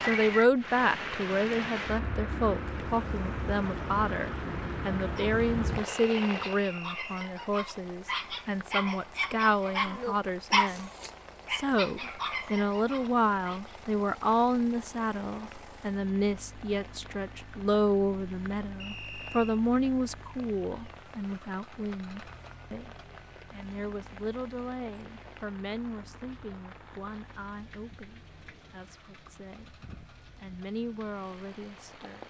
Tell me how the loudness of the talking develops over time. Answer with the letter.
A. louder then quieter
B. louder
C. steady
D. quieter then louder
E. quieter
E.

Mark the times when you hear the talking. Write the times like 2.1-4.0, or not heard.
0.0-10.9, 11.5-32.2.